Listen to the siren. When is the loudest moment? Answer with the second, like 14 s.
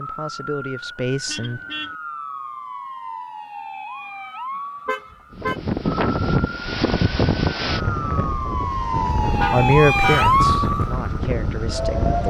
10 s.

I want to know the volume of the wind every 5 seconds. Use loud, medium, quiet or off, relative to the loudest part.
off, loud, loud.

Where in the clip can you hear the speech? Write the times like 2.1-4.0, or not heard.
0.0-1.6, 9.5-12.2.